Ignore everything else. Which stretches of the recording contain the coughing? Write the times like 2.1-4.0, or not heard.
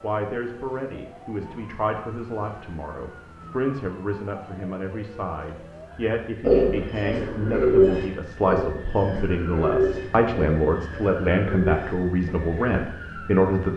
not heard.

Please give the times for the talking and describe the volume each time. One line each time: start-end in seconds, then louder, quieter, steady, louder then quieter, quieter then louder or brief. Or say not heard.
0.0-13.7 louder.